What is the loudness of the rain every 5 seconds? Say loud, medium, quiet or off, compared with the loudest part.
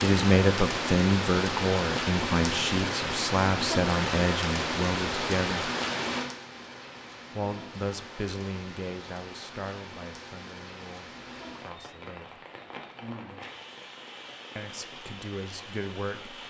loud, medium, quiet, quiet.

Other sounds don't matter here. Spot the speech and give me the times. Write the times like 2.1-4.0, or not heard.
0.0-5.7, 7.3-12.4, 14.6-16.4.